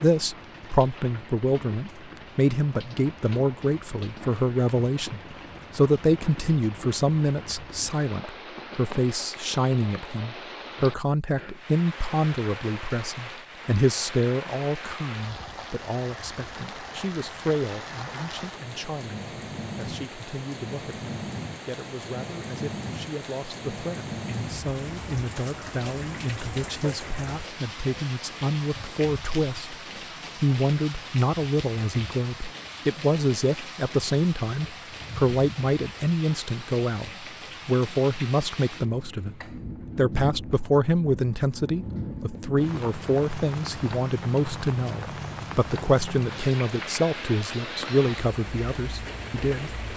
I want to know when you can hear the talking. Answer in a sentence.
You can hear the talking from 0.0 to 29.8 s, from 30.4 to 39.4 s and from 40.0 to 49.9 s.